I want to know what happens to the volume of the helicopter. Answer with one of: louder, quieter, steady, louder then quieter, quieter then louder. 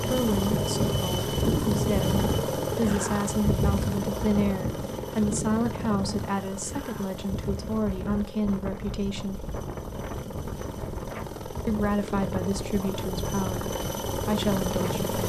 quieter then louder.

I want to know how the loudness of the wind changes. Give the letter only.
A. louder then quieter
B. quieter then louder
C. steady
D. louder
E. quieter
E.